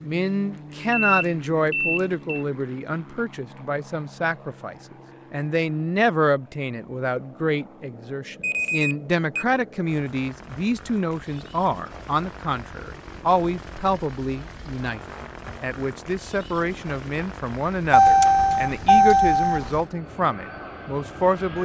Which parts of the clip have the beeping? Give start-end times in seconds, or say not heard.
0.9-2.5, 8.4-9.4, 17.9-19.8.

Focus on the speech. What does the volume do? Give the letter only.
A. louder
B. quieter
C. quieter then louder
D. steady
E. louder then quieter
D.